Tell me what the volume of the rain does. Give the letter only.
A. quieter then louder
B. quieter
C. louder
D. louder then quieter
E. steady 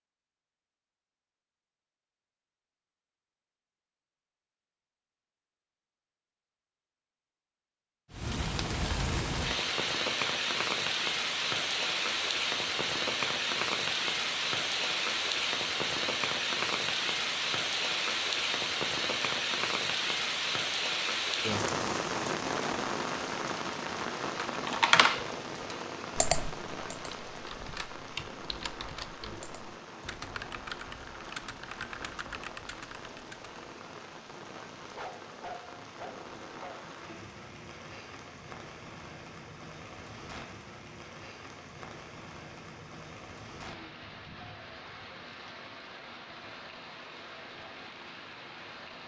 B.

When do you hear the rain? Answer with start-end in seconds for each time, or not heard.
8.1-49.0.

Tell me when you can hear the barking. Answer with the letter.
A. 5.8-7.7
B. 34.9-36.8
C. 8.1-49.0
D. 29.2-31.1
B.